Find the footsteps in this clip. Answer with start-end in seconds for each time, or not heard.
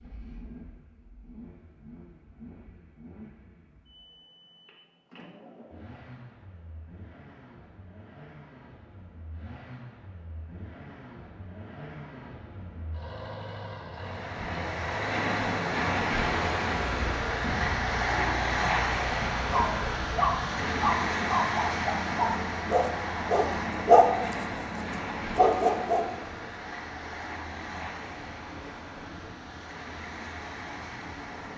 not heard.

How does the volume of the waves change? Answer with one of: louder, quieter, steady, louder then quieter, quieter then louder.
quieter.